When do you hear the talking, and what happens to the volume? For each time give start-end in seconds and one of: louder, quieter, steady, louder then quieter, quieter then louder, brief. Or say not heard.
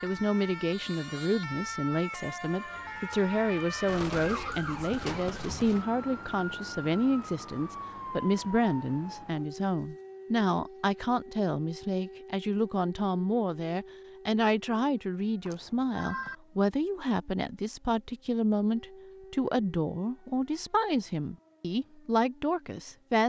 0.0-23.2 steady.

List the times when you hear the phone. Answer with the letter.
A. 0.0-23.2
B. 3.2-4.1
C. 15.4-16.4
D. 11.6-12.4
C.